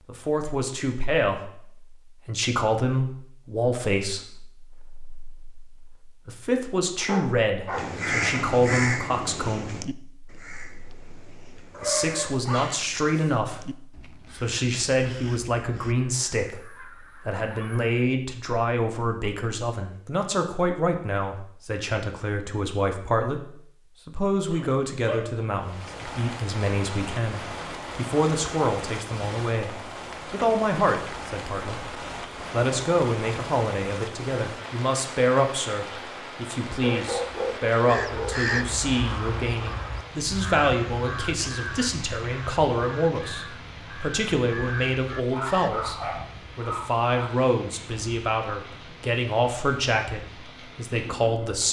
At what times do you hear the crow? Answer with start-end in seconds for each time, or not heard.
7.7-18.0, 37.1-45.8.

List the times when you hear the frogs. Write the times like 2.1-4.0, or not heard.
not heard.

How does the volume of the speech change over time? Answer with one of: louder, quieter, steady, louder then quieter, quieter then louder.
steady.